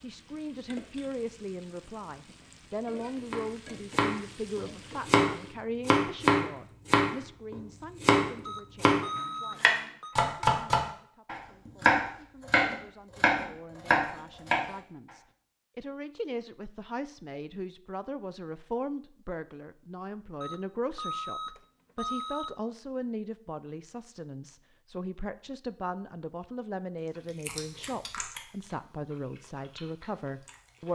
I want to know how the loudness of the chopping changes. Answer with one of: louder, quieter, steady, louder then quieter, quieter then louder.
steady.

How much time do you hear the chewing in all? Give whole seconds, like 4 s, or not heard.
4 s.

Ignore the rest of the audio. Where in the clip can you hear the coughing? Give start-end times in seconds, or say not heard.
not heard.